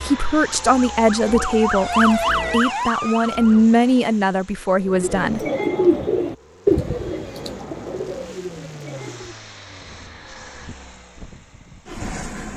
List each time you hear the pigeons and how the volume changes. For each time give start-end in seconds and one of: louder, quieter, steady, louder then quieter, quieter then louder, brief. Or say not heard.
4.8-9.3 quieter.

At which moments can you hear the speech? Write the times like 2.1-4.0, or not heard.
0.0-5.5.